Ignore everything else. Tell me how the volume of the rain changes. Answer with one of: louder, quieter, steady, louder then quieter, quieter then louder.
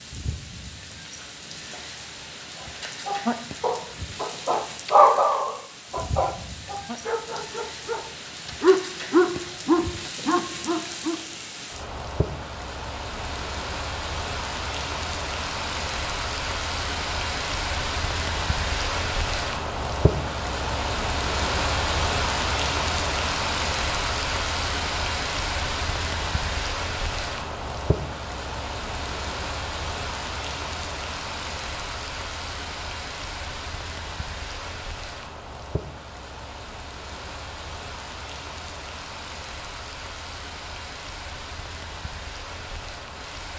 louder then quieter.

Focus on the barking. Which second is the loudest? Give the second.
5 s.